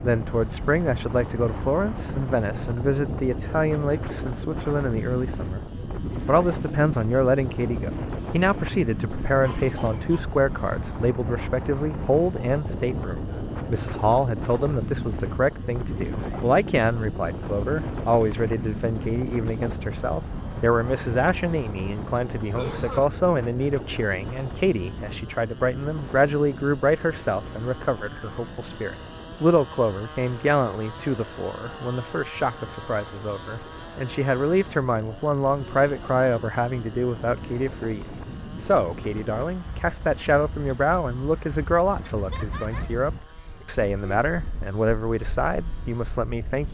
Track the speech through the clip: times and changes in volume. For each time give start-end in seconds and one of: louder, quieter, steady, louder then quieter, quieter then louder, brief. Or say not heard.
0.0-46.6 steady.